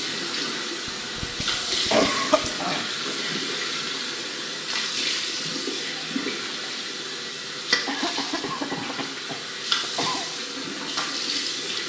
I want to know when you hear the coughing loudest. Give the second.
2 s.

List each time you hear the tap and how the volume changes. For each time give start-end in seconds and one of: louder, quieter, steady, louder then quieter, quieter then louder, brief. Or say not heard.
0.0-11.8 steady.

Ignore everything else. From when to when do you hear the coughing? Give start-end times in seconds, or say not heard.
0.8-2.9, 7.8-10.2.